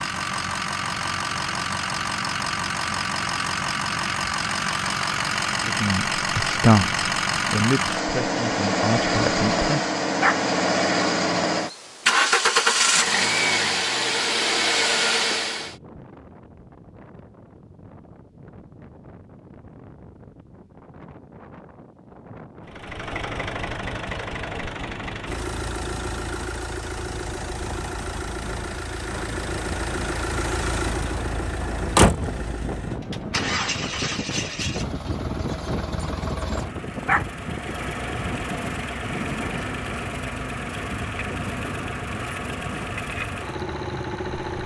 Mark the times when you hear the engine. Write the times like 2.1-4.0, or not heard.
0.0-15.8, 22.6-44.6.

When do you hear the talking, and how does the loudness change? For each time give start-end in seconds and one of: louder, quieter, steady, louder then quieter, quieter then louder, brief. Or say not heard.
5.7-9.8 quieter then louder.